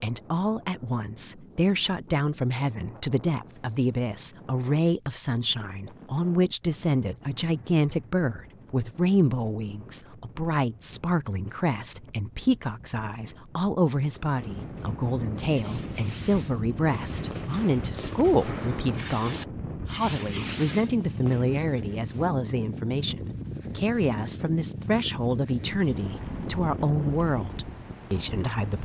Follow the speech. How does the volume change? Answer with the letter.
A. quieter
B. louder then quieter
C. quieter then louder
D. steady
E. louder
D.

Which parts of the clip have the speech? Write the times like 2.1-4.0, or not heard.
0.0-28.7.